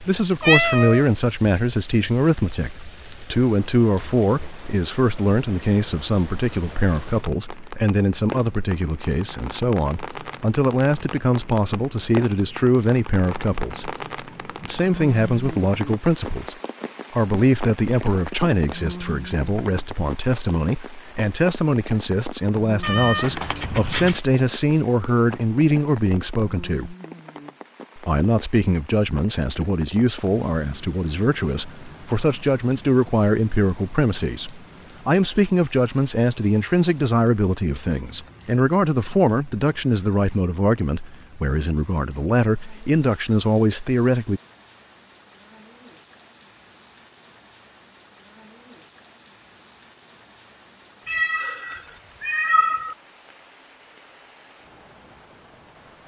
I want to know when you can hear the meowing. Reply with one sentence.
The meowing can be heard from 0.4 to 1.1 s, from 22.8 to 24.2 s and from 51.0 to 53.0 s.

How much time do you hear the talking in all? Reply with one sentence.
The talking can be heard for 43 seconds in total.